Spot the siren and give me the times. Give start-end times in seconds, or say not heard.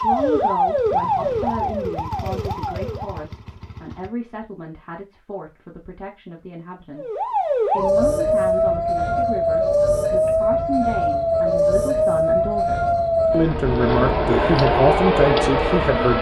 0.0-3.2, 7.0-16.1.